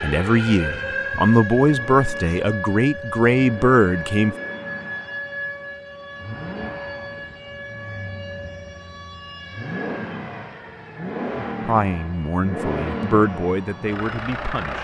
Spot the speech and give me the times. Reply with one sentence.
The speech can be heard from 0.0 to 4.3 s and from 11.7 to 14.7 s.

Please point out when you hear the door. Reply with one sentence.
The door can't be heard in this clip.